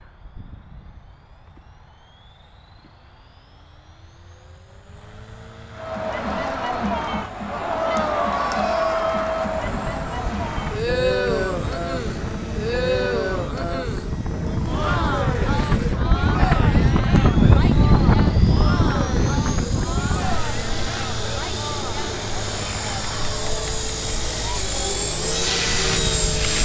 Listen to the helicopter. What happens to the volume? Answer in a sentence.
The loudness of the helicopter goes up.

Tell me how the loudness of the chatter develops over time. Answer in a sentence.
The loudness of the chatter goes down.